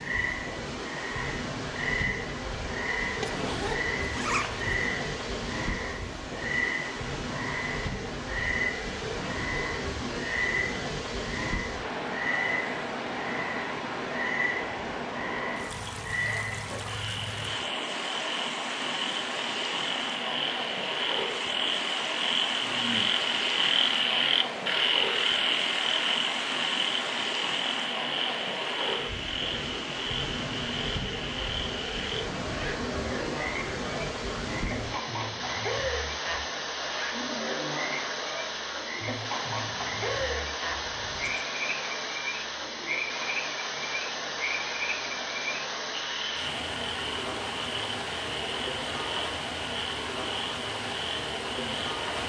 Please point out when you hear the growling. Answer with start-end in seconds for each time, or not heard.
not heard.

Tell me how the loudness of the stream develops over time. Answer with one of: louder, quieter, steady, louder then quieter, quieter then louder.
steady.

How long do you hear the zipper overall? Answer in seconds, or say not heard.
2 s.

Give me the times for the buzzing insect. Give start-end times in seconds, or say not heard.
not heard.